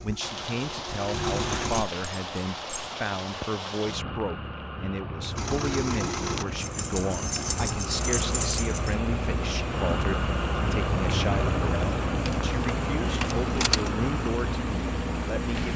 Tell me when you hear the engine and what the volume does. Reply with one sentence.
The engine can be heard briefly from 0.0 to 1.9 s; and from 5.3 to 15.7 s, at a steady volume.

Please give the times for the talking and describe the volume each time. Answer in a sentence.
You can hear the talking from 0.0 to 15.7 s, at a steady volume.